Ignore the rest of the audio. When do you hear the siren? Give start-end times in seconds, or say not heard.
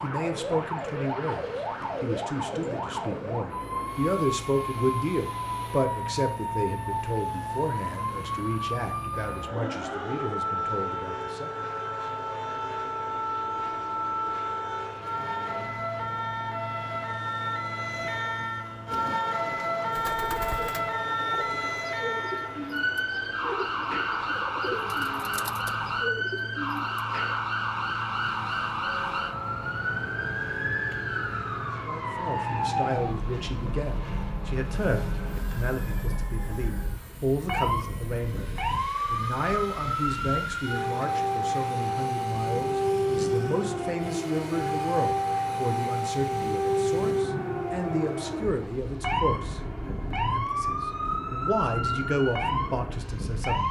0.0-53.6.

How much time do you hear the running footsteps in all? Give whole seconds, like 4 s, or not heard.
not heard.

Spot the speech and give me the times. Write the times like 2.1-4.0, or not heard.
0.0-11.7, 31.9-53.6.